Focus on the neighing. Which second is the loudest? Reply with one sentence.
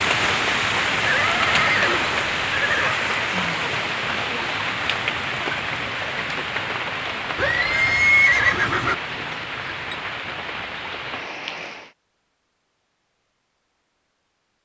The volume of the neighing peaks at 8 seconds.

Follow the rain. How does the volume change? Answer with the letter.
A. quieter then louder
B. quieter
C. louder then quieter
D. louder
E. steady
B.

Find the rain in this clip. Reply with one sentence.
The rain can be heard from 0.0 to 11.9 s.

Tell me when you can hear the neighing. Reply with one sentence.
You can hear the neighing from 1.1 to 3.0 s and from 7.3 to 8.9 s.